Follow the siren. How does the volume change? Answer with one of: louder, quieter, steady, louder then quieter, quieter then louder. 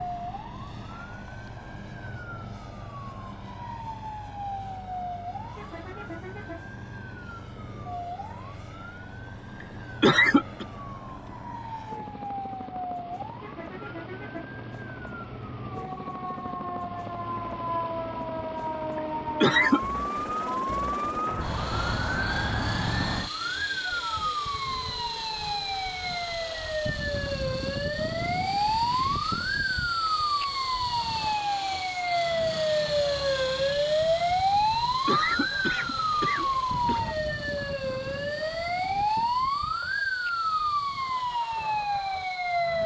louder.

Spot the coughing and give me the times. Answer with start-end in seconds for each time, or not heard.
9.6-10.7, 19.4-19.8, 35.0-37.0.